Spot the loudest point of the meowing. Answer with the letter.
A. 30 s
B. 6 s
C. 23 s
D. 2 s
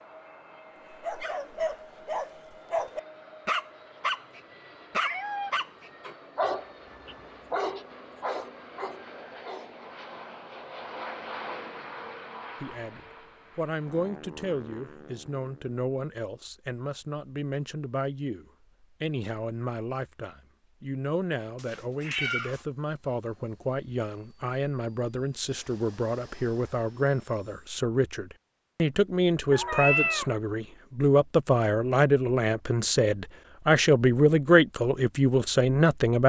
A.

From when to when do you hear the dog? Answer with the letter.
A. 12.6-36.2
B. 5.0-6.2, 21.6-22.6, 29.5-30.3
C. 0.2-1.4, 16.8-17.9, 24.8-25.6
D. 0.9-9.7
D.